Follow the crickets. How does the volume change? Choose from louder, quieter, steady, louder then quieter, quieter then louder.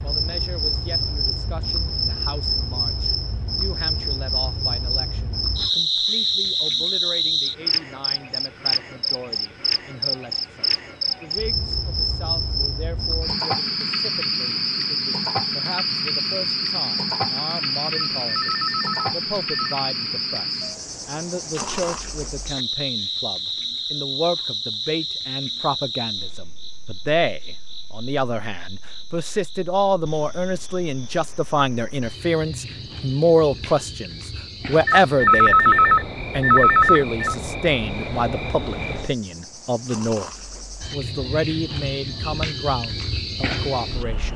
quieter then louder.